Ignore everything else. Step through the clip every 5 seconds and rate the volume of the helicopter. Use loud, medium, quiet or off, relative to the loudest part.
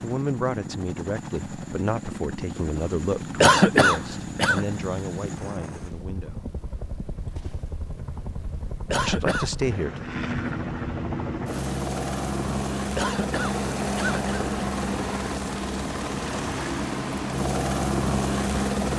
medium, medium, loud, loud.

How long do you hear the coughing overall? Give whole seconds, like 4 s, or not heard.
3 s.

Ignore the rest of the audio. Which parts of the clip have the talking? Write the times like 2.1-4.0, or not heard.
0.0-6.5, 9.0-10.1.